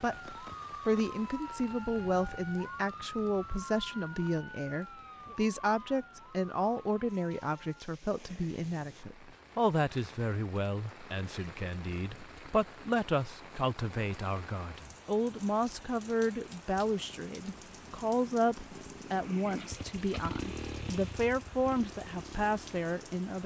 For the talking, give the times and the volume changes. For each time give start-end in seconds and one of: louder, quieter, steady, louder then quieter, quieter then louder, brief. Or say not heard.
0.0-23.4 steady.